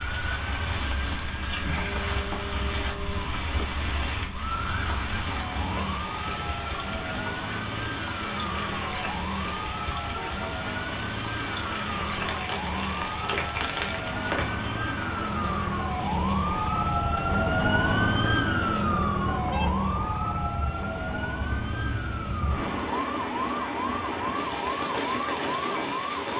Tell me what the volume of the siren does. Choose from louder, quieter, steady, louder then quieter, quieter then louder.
louder then quieter.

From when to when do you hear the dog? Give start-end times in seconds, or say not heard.
not heard.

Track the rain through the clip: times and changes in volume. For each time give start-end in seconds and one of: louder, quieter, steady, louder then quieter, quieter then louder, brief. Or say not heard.
0.0-26.3 quieter then louder.